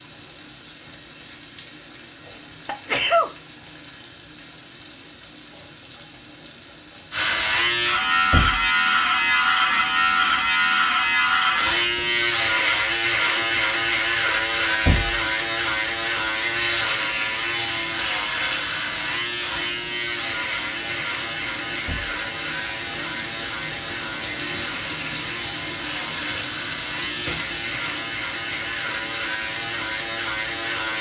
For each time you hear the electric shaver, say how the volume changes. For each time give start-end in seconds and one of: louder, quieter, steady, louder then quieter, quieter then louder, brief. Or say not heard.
7.1-30.9 quieter.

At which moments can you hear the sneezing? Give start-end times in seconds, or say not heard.
2.2-3.3.